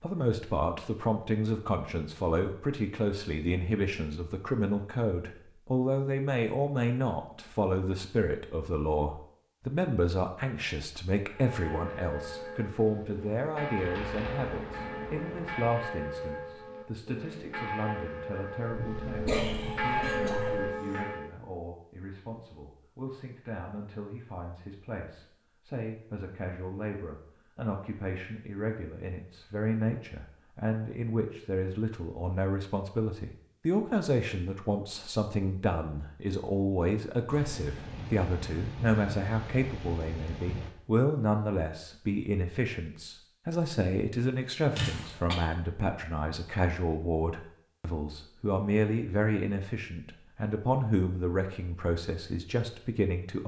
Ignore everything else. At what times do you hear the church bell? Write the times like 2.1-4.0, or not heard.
11.3-21.4.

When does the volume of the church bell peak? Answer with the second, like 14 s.
20 s.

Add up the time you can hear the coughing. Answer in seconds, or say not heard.
2 s.